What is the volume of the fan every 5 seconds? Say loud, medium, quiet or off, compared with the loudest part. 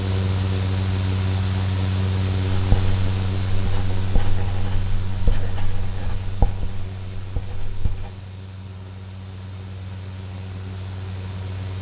loud, medium, medium.